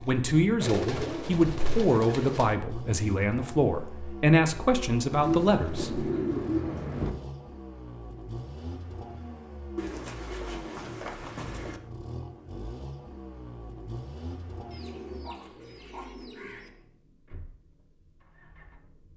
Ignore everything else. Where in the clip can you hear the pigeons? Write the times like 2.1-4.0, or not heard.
0.6-2.5, 5.1-7.1, 9.8-11.8, 14.7-16.7.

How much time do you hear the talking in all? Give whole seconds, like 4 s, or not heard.
6 s.